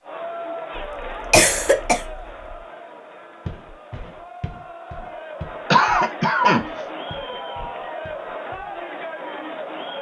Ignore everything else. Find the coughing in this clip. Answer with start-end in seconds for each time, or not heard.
0.8-2.5, 5.7-6.6.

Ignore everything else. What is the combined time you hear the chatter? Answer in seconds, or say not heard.
10 s.